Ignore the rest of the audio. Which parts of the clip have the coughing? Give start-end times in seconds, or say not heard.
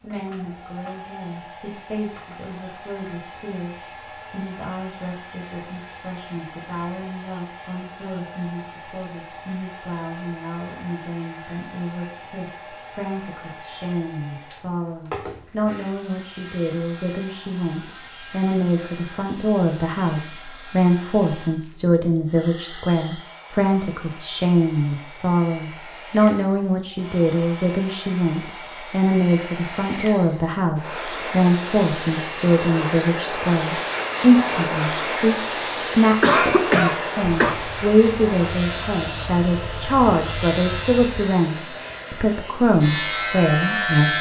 36.2-37.6.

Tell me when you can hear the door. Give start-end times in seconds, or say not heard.
not heard.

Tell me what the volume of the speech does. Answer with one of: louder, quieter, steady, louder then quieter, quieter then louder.
louder.